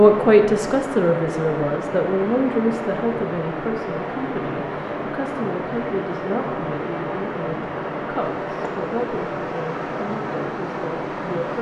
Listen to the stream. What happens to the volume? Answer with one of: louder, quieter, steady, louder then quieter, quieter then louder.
steady.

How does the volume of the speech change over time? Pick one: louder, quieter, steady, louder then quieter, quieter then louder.
quieter.